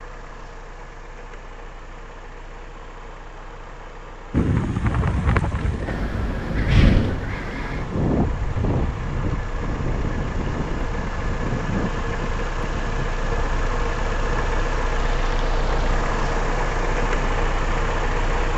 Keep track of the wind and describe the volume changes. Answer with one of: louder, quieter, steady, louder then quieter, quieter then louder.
quieter.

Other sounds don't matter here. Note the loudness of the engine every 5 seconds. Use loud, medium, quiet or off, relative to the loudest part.
quiet, medium, loud, loud.